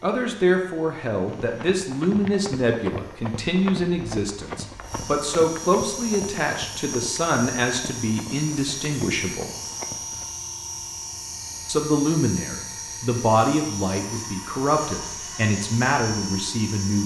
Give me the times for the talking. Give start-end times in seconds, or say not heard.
0.0-9.5, 11.7-17.0.